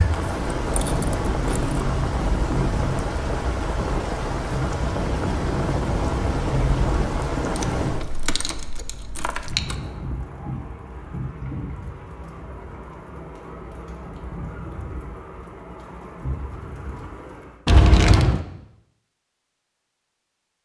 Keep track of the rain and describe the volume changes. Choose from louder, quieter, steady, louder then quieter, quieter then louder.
quieter.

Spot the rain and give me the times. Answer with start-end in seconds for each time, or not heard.
0.0-17.6.